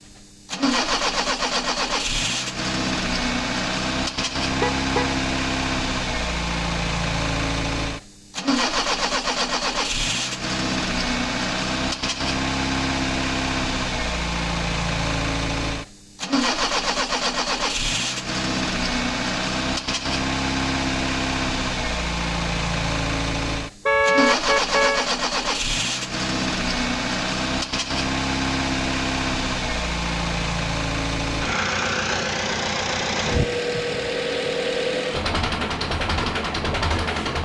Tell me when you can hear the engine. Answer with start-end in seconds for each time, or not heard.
0.0-37.4.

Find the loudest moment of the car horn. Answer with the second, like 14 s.
24 s.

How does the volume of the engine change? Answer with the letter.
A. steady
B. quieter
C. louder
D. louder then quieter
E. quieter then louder
A.